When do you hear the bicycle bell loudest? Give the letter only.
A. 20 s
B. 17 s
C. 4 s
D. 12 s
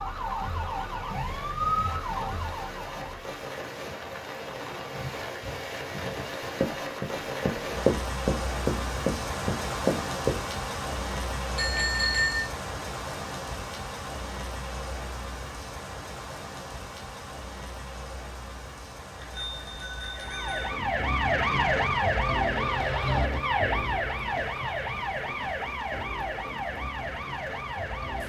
D.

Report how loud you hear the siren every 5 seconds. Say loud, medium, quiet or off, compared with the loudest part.
medium, off, off, off, loud, medium.